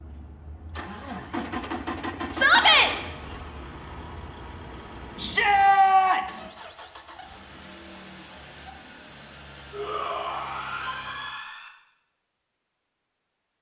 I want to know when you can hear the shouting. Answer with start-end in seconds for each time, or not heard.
2.3-2.9, 5.2-6.4, 9.7-11.7.